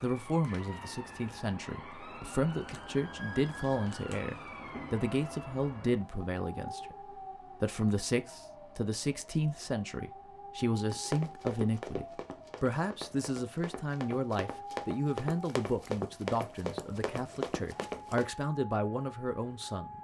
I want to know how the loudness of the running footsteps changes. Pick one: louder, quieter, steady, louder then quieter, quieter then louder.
quieter then louder.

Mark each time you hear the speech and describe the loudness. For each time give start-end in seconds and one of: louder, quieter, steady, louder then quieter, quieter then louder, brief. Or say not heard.
0.0-19.9 steady.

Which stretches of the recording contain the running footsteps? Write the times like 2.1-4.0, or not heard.
10.9-18.3.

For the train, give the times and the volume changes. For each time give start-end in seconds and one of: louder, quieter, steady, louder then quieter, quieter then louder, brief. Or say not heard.
not heard.